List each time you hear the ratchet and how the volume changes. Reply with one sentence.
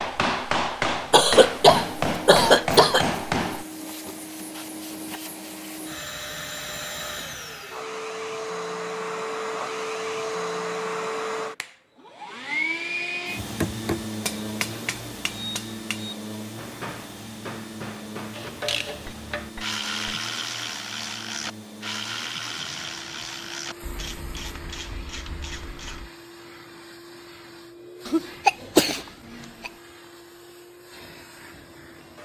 You can hear the ratchet from 18.3 to 26.1 s, getting quieter.